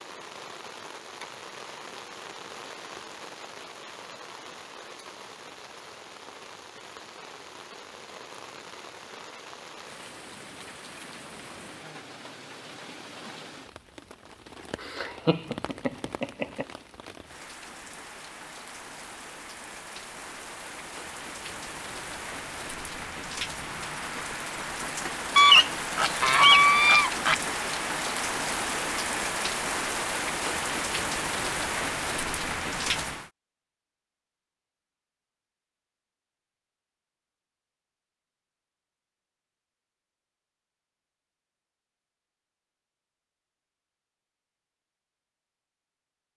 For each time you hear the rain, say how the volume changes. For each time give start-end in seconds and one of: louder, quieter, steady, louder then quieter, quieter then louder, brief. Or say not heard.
0.0-33.3 louder.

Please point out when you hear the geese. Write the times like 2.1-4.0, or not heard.
25.4-27.4.